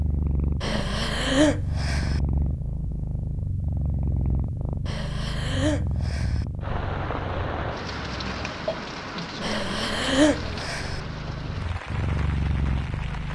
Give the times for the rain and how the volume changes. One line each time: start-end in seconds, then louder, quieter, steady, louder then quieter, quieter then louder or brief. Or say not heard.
6.6-13.3 quieter.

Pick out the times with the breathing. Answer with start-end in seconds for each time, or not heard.
0.6-2.2, 4.8-6.5, 9.4-11.0.